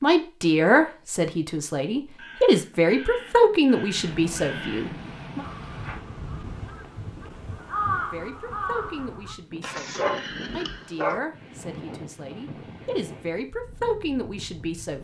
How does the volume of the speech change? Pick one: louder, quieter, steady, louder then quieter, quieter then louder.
quieter then louder.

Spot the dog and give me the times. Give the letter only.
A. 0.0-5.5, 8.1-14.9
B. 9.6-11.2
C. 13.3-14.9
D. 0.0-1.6
B.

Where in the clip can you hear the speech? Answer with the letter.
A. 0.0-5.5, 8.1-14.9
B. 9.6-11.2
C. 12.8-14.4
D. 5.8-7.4
A.